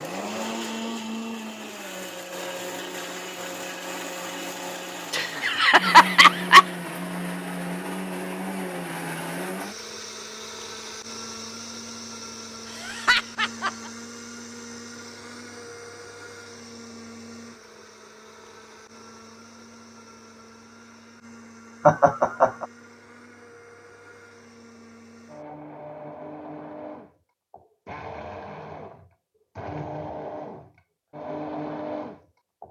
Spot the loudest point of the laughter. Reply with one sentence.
The loudest moment of the laughter is at 6 seconds.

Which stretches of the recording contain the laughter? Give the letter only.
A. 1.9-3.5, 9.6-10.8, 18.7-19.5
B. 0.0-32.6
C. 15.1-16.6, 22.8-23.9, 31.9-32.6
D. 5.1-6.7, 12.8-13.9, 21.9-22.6
D.